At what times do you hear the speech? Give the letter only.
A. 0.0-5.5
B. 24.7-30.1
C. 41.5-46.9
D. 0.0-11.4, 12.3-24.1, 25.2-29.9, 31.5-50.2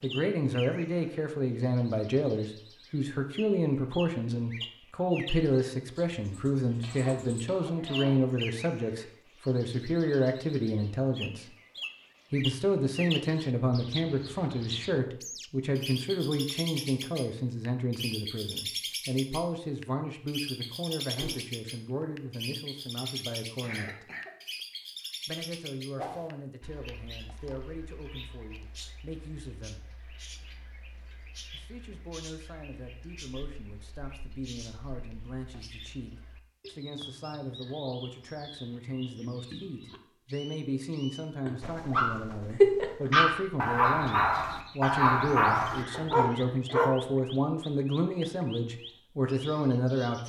D.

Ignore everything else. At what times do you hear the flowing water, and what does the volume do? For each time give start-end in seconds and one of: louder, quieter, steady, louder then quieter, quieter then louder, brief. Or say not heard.
not heard.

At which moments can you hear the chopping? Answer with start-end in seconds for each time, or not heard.
not heard.